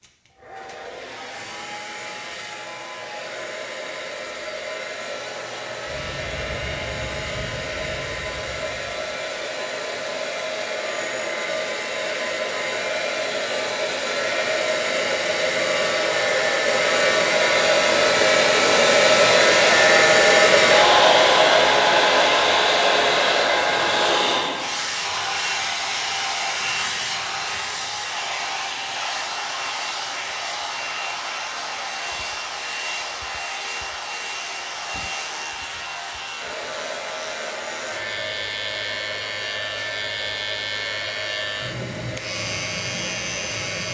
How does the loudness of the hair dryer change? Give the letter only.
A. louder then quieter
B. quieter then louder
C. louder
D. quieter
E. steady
A.